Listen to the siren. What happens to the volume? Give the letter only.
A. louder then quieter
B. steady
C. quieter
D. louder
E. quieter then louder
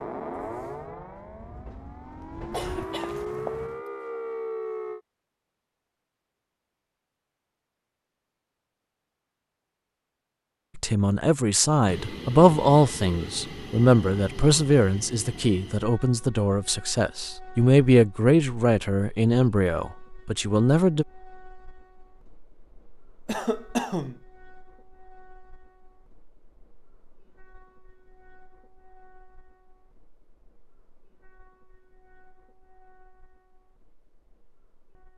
E.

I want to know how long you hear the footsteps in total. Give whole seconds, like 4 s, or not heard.
not heard.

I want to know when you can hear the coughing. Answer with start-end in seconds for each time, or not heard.
2.5-3.8, 23.2-24.2.